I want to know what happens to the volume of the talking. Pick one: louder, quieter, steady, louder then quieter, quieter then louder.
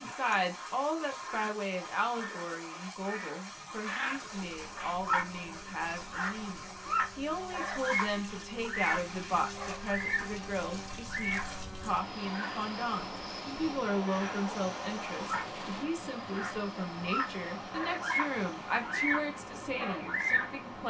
steady.